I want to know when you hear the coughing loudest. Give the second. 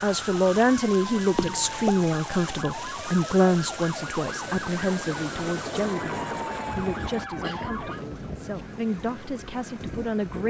2 s.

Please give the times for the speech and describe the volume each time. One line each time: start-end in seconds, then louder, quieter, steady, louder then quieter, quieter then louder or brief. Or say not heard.
0.0-10.4 quieter.